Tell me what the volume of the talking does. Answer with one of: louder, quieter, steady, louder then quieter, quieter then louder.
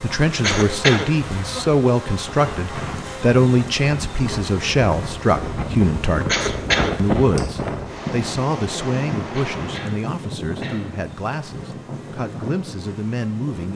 quieter.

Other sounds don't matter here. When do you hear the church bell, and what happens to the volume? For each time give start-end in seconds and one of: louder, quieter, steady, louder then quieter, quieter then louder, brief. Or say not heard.
not heard.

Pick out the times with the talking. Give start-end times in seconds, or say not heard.
0.0-13.7.